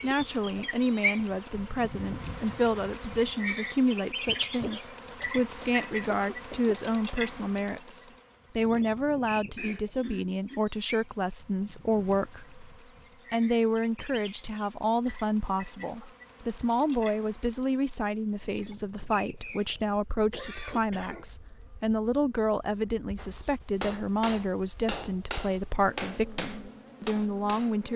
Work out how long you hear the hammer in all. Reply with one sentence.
You can hear the hammer for 5 seconds altogether.